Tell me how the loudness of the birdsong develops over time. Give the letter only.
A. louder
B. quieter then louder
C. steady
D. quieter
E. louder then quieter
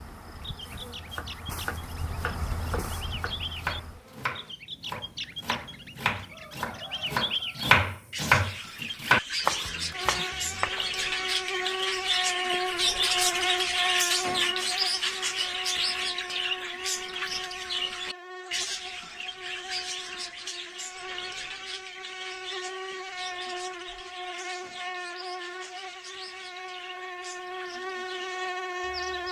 E.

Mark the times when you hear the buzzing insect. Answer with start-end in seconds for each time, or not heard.
0.0-4.5, 9.9-29.2.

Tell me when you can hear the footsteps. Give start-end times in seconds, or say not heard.
not heard.